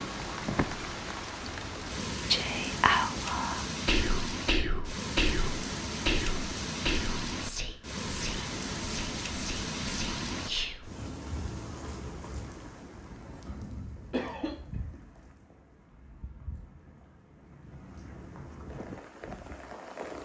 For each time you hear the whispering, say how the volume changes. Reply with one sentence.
The whispering can be heard from 2.1 to 10.9 s, getting quieter.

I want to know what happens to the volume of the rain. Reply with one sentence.
The loudness of the rain goes down.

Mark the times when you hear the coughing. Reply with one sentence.
You can hear the coughing from 14.1 to 14.6 s.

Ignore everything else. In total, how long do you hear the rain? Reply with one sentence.
You can hear the rain for 20 seconds altogether.